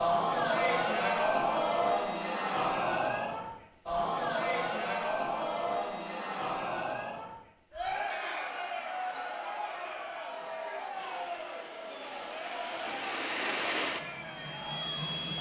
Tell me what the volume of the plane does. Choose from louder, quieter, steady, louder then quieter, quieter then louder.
louder then quieter.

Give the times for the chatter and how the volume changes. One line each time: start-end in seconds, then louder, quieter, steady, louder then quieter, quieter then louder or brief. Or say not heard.
0.0-15.3 quieter.